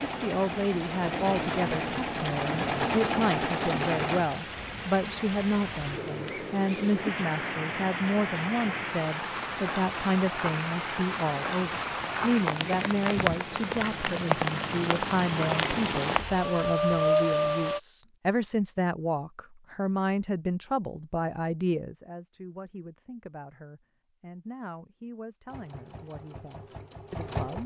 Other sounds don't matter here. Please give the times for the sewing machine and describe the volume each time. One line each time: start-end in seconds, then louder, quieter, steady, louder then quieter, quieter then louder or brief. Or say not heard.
0.0-4.2 louder
25.4-27.6 brief.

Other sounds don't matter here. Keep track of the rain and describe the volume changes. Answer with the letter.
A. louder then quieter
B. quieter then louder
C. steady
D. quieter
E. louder
E.